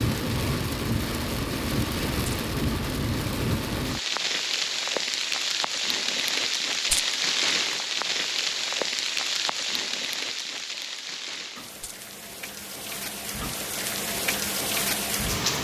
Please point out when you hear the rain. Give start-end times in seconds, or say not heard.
0.0-15.5.